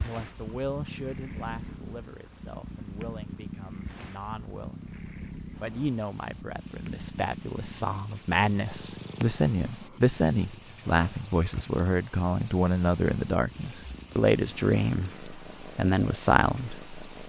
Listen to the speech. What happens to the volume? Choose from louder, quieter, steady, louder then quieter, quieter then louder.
louder.